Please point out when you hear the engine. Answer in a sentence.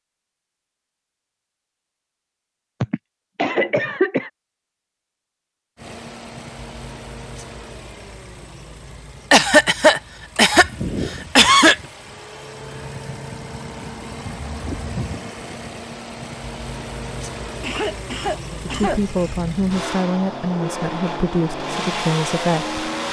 The engine can be heard from 5.8 to 23.0 s.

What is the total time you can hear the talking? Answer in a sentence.
You can hear the talking for 4 seconds altogether.